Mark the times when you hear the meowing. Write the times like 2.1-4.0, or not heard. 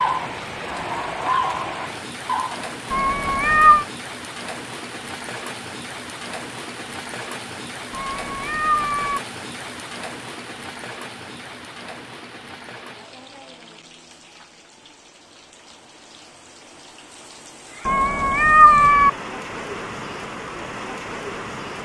2.9-3.9, 7.9-9.2, 17.9-19.1.